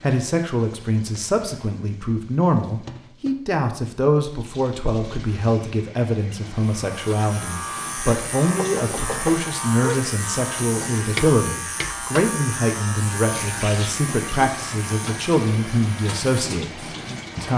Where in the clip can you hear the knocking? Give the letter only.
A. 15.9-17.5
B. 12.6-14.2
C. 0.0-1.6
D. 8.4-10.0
D.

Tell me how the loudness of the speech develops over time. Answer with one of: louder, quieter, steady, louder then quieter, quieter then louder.
steady.